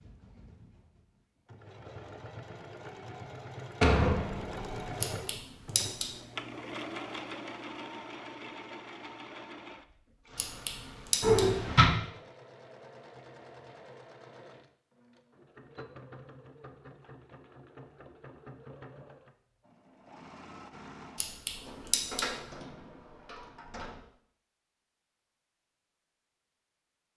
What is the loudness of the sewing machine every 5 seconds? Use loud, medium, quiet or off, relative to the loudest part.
loud, loud, medium, medium, medium, off.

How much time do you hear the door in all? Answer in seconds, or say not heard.
4 s.